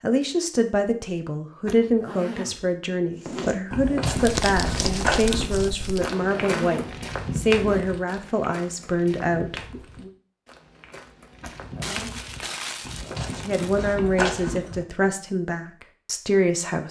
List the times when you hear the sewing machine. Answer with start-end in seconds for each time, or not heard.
not heard.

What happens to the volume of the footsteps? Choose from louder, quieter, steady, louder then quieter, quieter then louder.
quieter then louder.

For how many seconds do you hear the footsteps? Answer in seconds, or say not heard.
12 s.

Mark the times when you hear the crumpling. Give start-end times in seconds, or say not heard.
4.1-6.0, 11.8-13.9.